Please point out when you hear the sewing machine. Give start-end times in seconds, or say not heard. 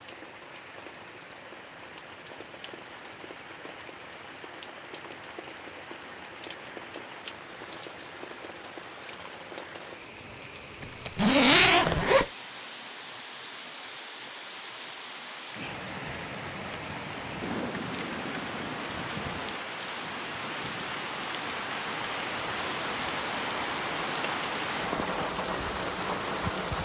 not heard.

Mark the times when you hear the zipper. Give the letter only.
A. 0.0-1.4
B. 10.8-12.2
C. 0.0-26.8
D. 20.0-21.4
B.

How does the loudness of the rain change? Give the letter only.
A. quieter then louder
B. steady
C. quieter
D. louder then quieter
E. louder
E.